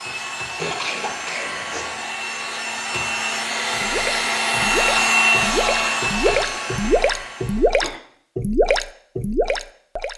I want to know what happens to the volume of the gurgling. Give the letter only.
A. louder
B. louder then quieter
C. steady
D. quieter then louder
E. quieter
A.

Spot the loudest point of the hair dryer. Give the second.
5 s.